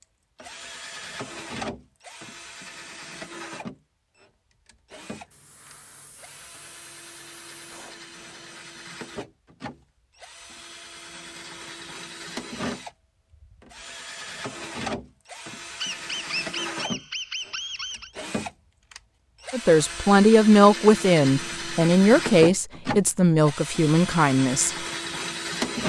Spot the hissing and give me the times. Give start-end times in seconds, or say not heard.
5.1-8.7.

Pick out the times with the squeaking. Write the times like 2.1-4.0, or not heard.
15.8-18.1.